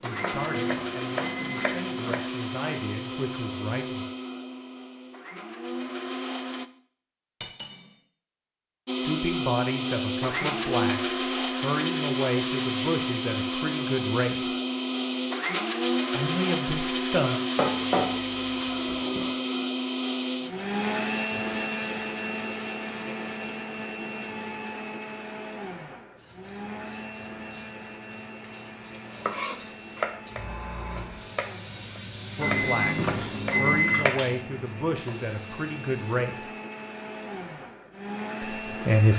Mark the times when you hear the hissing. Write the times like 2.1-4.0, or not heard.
26.1-36.5.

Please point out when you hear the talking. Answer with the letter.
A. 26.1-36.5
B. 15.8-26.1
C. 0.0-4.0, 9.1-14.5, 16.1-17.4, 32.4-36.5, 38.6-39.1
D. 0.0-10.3
C.